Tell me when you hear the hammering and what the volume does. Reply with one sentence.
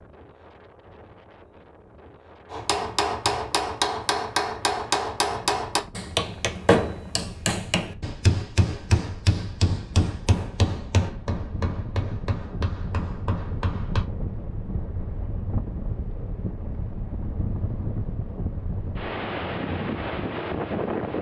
The hammering can be heard from 2.5 to 14.1 s, getting quieter.